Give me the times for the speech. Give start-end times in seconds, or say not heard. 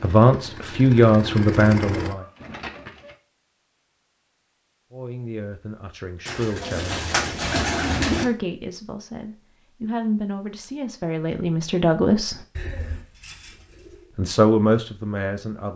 0.0-2.2, 4.9-7.0, 8.1-12.4, 14.2-15.7.